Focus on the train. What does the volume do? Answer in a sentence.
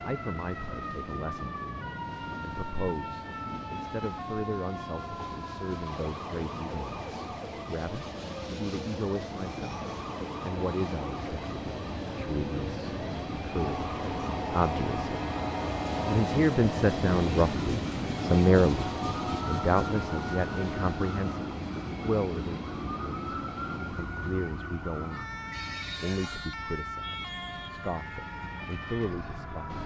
The loudness of the train goes up, then down.